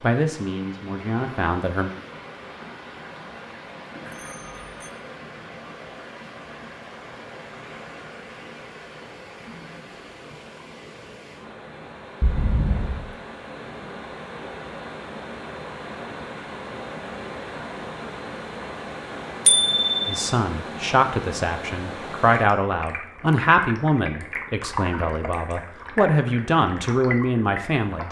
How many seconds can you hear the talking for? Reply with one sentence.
You can hear the talking for 10 seconds altogether.